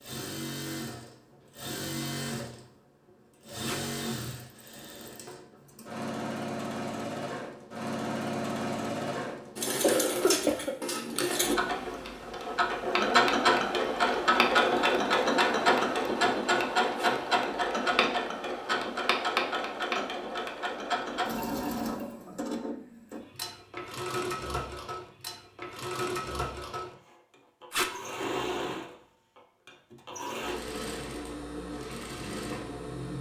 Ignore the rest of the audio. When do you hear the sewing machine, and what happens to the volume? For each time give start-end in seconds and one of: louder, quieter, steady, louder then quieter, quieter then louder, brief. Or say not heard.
0.0-33.1 louder then quieter.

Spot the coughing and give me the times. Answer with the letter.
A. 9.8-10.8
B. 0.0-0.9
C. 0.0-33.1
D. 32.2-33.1
A.